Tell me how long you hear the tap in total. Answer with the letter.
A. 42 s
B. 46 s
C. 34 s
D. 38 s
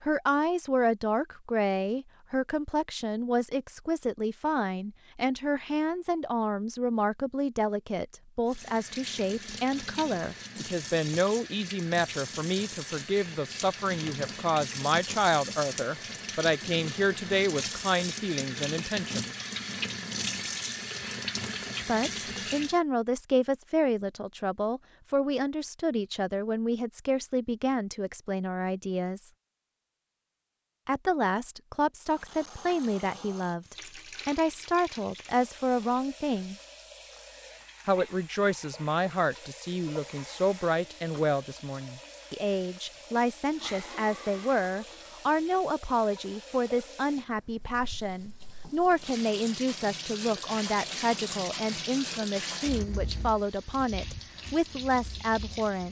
D.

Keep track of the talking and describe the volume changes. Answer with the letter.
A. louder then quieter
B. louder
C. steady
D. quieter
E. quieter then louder
C.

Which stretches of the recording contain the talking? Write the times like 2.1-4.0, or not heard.
0.0-19.4, 21.9-29.3, 30.9-36.5, 37.9-55.8.